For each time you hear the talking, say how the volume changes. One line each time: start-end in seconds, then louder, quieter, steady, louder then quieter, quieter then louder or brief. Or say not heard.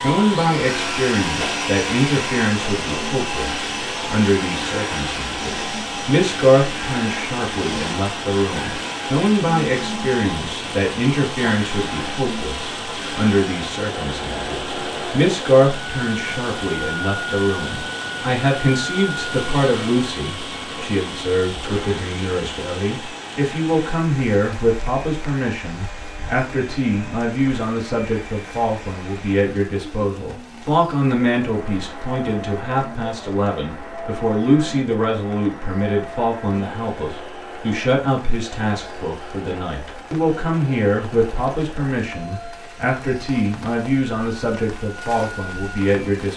0.0-46.3 steady.